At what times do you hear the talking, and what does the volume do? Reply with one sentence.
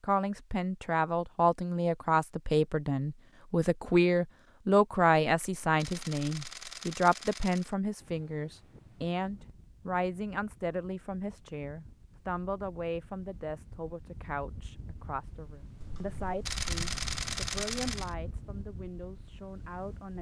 The talking can be heard from 0.0 to 20.1 s, getting quieter.